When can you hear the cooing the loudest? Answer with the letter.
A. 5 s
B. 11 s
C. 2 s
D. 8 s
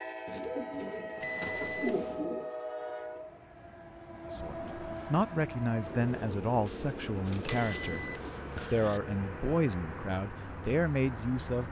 C.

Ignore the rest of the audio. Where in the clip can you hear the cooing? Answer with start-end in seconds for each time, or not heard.
0.2-2.5, 6.7-8.4.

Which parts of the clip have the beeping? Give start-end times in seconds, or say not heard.
1.2-2.2, 7.7-9.0.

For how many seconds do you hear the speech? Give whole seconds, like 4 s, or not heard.
7 s.